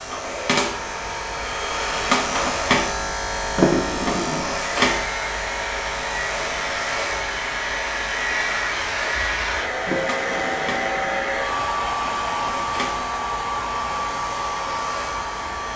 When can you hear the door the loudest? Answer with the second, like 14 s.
4 s.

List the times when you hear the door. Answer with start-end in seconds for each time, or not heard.
3.5-4.5, 9.8-11.2.